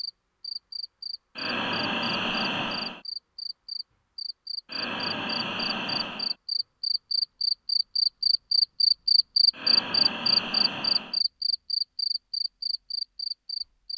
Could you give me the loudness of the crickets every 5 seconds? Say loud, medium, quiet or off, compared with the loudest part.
quiet, loud, loud.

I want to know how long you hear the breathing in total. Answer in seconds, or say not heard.
5 s.